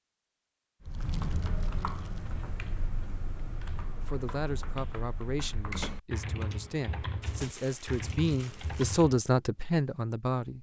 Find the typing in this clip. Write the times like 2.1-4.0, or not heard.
0.8-9.2.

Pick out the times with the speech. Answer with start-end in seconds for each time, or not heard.
4.0-10.5.